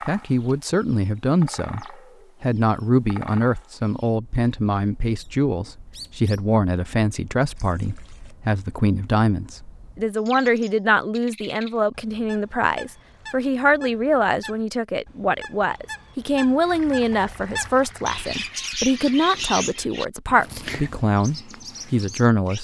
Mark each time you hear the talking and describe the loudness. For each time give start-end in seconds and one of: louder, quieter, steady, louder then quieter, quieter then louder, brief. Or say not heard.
0.1-22.6 steady.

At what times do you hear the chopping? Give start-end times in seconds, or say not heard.
not heard.